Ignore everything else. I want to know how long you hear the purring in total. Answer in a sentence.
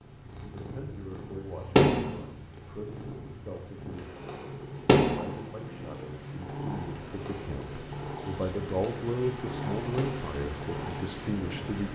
The purring can be heard for 12 seconds in total.